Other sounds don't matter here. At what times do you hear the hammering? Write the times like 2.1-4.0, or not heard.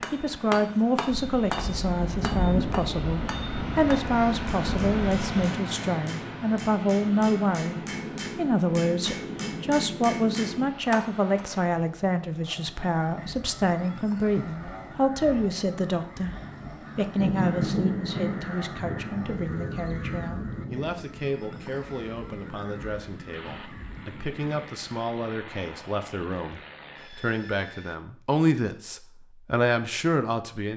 0.0-11.4.